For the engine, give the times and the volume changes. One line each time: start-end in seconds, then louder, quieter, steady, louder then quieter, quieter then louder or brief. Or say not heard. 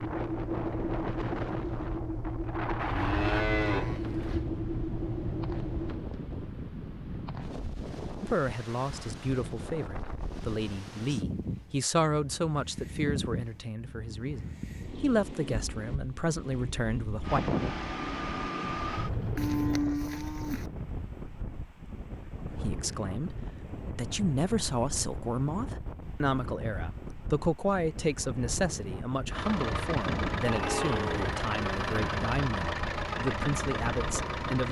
0.0-6.0 steady
17.2-19.8 brief
29.3-34.6 steady.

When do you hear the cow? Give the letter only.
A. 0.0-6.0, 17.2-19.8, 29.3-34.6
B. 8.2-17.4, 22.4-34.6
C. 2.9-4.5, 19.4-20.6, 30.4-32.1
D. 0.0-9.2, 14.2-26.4
C.